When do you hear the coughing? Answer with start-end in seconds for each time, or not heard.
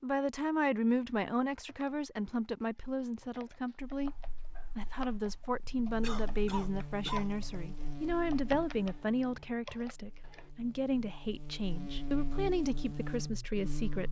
6.0-7.3.